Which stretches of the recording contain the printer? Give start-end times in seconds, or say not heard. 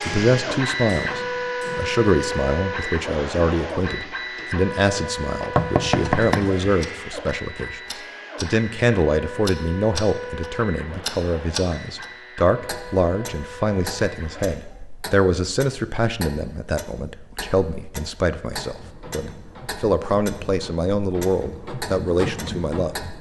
0.0-14.6, 18.5-23.1.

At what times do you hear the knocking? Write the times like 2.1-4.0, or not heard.
5.5-6.8.